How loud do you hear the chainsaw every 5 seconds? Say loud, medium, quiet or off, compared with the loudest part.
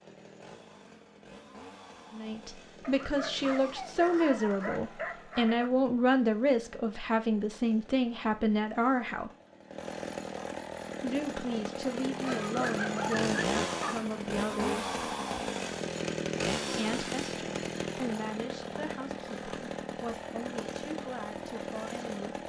quiet, quiet, loud, loud, medium.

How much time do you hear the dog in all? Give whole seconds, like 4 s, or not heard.
5 s.